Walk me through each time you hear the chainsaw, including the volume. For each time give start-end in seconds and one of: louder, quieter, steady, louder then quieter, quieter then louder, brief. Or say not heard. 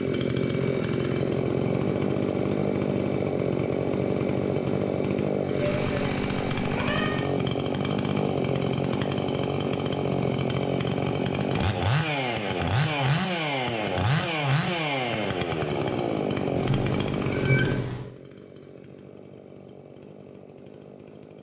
0.0-21.3 quieter.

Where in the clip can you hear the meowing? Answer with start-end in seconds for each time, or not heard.
5.6-7.2, 16.6-18.1.